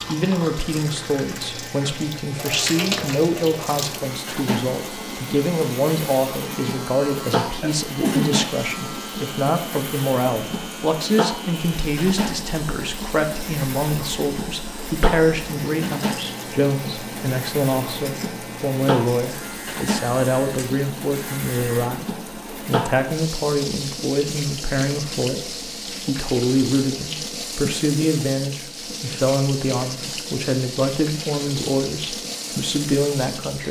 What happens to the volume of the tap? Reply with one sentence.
The volume of the tap stays about the same.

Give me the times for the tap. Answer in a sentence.
You can hear the tap from 0.0 to 33.6 s.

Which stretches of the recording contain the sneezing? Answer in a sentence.
You can hear the sneezing from 7.6 to 8.8 s.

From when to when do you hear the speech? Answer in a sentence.
You can hear the speech from 0.1 to 33.6 s.